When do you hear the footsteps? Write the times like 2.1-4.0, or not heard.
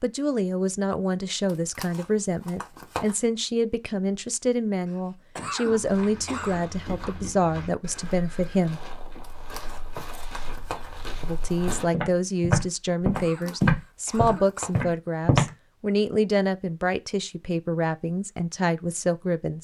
5.7-15.5.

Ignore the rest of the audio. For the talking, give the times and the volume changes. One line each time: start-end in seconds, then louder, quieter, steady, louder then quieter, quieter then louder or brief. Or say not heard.
0.0-8.8 steady
11.2-19.5 steady.